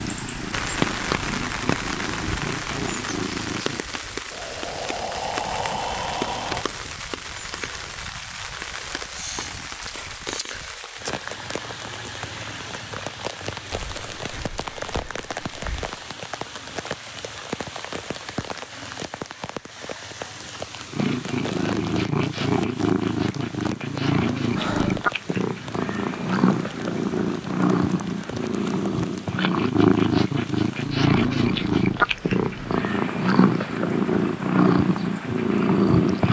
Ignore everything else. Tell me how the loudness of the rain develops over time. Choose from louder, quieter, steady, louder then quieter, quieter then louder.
quieter.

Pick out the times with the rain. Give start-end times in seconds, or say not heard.
0.0-36.2.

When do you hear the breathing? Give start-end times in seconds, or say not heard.
4.3-6.7, 13.7-15.9, 24.5-25.1.